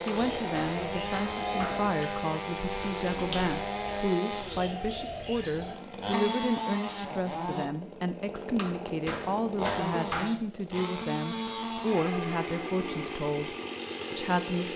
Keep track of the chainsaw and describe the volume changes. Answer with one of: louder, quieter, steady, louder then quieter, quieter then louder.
steady.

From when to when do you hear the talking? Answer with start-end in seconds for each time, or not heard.
0.1-14.7.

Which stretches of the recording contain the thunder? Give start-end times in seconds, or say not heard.
not heard.